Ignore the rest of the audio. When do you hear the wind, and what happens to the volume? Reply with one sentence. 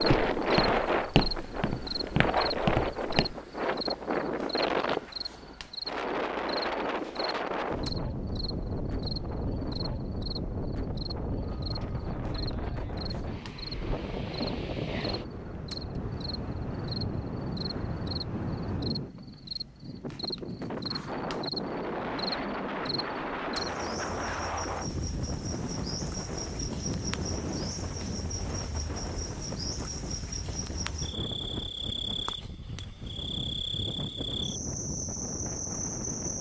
The wind can be heard from 0.0 to 36.3 s, getting quieter.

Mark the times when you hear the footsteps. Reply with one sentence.
The footsteps can be heard from 0.0 to 3.4 s.